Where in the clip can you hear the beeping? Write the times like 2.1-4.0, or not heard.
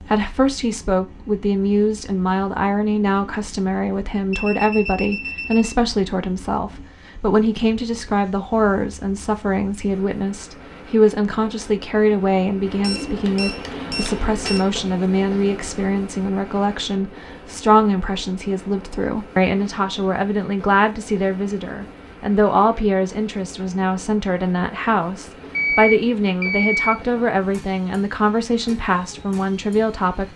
4.3-5.8, 12.8-14.7, 25.5-27.0.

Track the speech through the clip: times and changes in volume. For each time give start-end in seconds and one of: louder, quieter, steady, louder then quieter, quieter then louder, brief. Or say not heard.
0.0-30.3 steady.